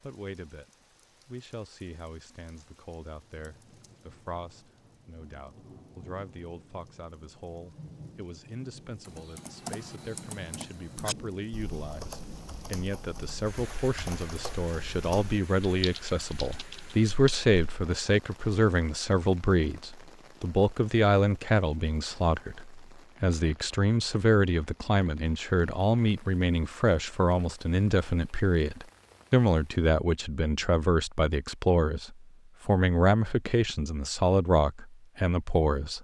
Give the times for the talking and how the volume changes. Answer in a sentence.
The talking can be heard from 0.0 to 35.9 s, getting louder.